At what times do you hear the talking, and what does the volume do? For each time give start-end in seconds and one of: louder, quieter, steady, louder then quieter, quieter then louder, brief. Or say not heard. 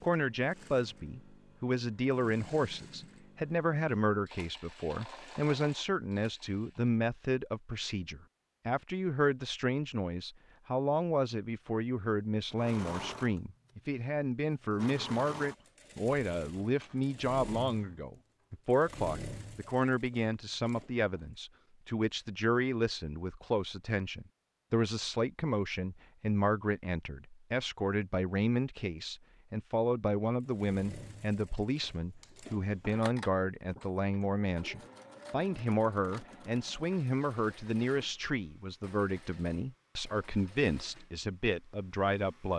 0.0-42.5 steady.